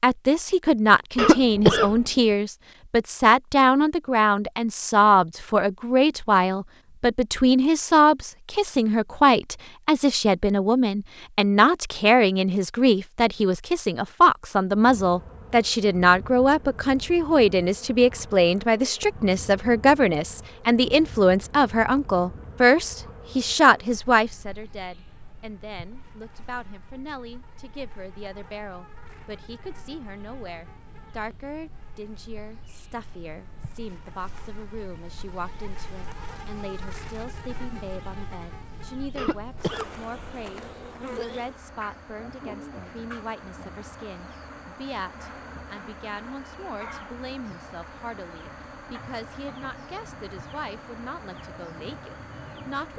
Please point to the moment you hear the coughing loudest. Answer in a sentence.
The loudest moment of the coughing is at 2 seconds.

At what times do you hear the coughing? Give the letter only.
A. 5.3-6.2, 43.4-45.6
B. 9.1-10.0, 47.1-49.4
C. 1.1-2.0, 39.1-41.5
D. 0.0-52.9
C.